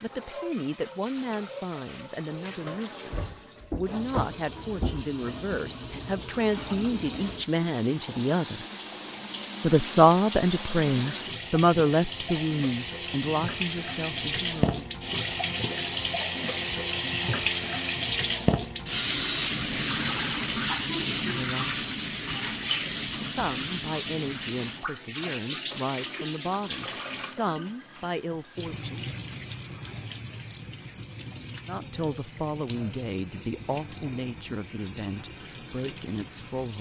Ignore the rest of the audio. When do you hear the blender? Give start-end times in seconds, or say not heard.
not heard.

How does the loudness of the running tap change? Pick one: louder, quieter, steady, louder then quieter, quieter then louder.
louder then quieter.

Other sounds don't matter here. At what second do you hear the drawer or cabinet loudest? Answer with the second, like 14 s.
4 s.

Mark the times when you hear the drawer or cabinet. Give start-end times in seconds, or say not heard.
3.1-5.6.